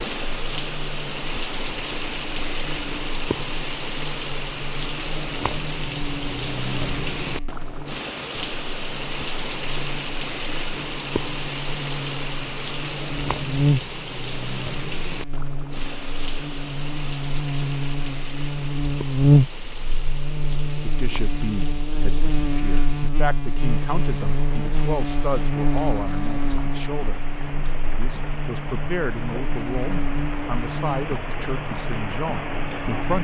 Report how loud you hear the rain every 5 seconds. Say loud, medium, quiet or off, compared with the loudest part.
loud, loud, loud, medium, medium, medium, loud.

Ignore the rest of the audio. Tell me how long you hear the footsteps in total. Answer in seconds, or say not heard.
not heard.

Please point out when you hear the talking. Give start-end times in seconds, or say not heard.
20.8-27.2, 27.9-33.1.